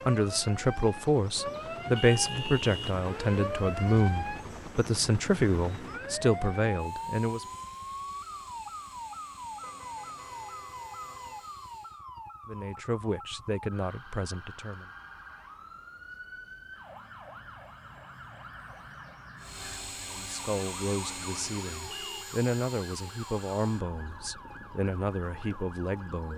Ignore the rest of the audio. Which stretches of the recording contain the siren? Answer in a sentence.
You can hear the siren from 0.0 to 26.3 s.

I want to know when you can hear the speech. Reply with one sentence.
You can hear the speech from 0.1 to 7.5 s, from 12.4 to 14.9 s and from 20.1 to 26.3 s.